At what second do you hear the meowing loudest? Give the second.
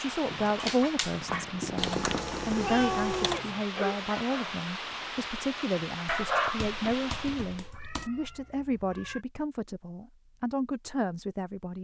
3 s.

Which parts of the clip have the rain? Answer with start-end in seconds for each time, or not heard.
0.0-7.7.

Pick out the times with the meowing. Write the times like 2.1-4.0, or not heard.
2.5-3.6, 7.5-9.2.